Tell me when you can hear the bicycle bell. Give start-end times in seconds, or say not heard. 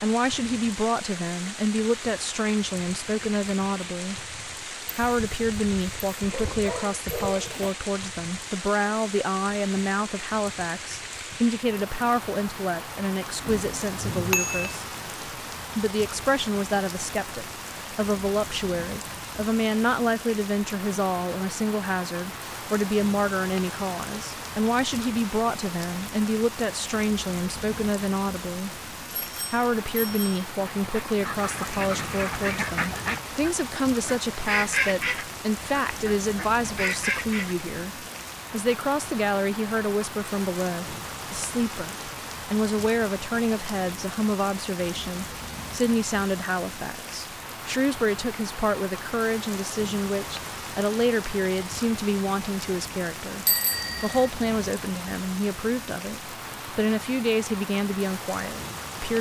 13.4-14.8, 29.1-30.4, 53.5-54.3.